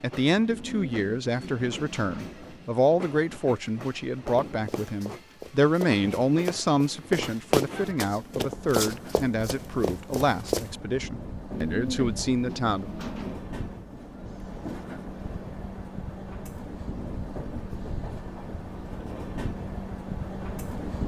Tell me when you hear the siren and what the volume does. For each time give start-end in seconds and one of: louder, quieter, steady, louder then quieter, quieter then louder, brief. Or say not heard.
not heard.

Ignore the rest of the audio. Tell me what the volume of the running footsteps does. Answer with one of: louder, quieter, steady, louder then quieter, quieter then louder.
louder then quieter.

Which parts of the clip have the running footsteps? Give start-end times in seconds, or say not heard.
4.3-10.7.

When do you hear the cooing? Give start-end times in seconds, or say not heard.
0.5-2.8, 11.5-13.4.